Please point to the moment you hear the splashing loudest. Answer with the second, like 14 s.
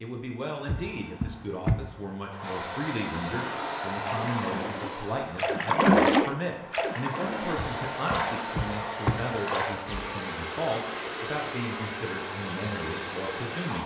6 s.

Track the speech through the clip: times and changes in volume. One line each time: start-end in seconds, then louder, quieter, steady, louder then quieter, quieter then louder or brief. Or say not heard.
0.0-13.8 steady.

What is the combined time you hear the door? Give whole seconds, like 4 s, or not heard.
3 s.